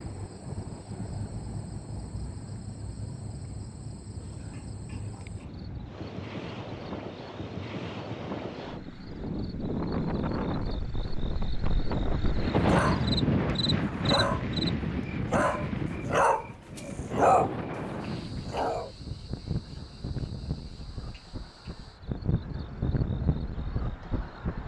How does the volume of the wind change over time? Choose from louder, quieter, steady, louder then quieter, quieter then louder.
louder then quieter.